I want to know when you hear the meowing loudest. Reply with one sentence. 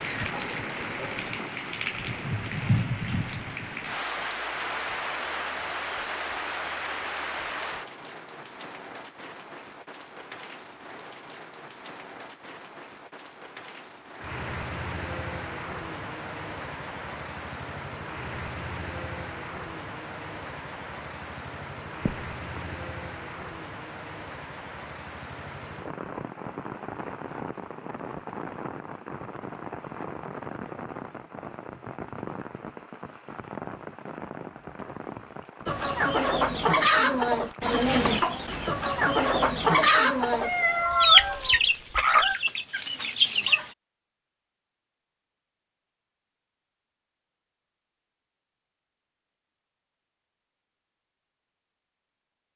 The volume of the meowing peaks at 41 seconds.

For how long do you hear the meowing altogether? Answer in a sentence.
You can hear the meowing for 3 seconds altogether.